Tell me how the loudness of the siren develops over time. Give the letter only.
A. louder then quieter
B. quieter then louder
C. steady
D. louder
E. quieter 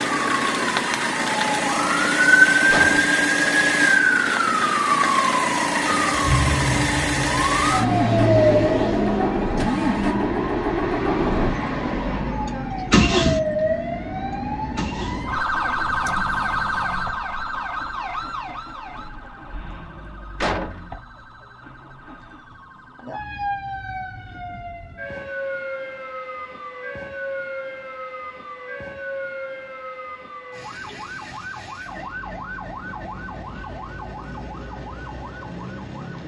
E.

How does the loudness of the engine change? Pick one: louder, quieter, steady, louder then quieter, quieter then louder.
quieter.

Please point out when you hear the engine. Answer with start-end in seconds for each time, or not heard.
0.0-22.6.